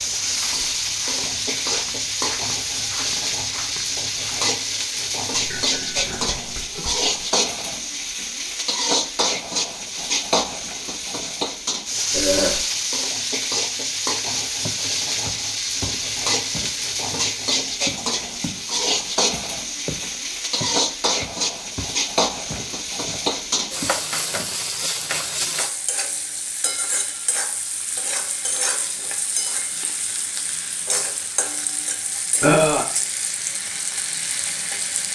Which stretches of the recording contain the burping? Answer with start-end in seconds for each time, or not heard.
5.3-7.1, 12.1-12.7, 32.4-32.9.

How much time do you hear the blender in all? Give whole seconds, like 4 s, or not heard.
not heard.